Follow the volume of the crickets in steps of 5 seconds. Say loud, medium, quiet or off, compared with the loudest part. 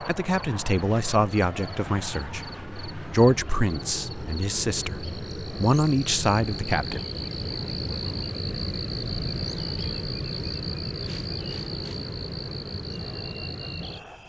medium, loud, loud.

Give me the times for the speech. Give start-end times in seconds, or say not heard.
0.0-7.0.